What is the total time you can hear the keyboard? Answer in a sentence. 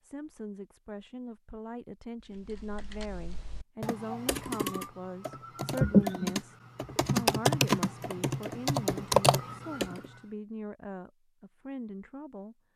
You can hear the keyboard for 8 seconds altogether.